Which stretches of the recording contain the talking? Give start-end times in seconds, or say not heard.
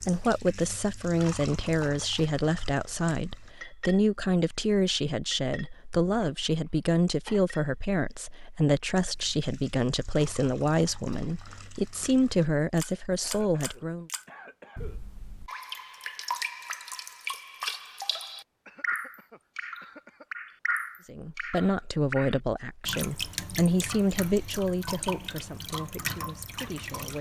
0.0-14.1, 21.1-27.1.